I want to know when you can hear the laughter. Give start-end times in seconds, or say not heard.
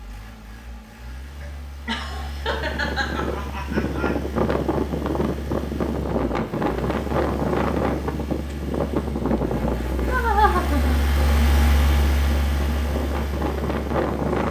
1.4-4.2, 10.1-11.0.